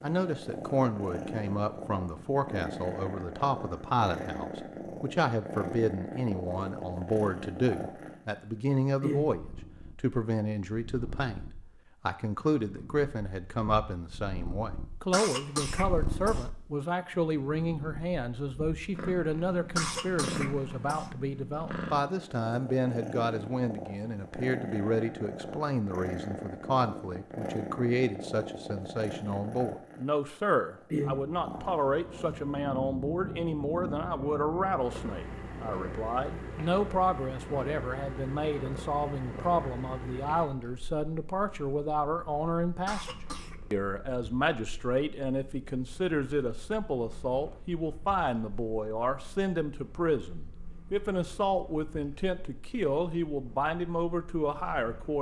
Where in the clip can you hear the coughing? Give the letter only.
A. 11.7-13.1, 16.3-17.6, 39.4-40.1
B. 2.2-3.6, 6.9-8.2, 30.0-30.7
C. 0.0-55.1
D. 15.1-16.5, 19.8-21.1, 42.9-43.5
D.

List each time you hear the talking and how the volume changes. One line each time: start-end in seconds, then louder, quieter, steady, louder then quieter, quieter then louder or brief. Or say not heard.
0.0-55.1 steady.